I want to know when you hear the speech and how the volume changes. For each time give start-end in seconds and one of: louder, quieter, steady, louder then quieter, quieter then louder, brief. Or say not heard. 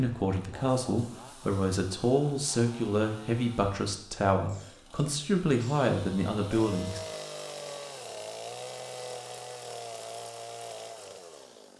0.0-7.0 steady.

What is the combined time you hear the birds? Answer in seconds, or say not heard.
not heard.